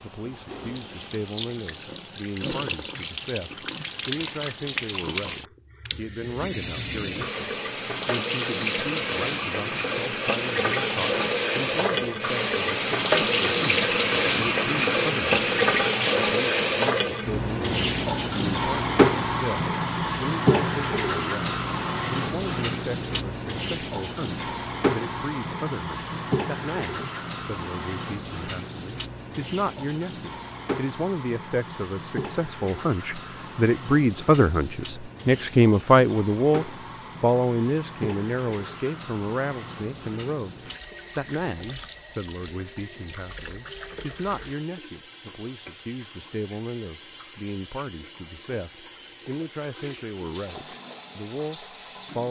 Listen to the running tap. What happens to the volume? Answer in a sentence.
The volume of the running tap goes up, then down.